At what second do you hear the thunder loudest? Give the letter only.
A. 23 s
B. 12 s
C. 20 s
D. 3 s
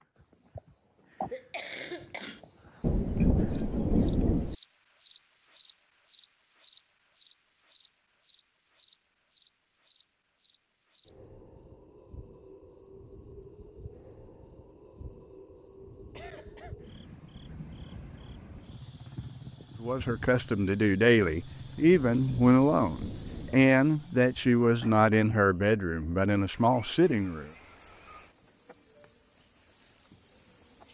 D.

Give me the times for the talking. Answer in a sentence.
The talking can be heard from 19.8 to 27.5 s.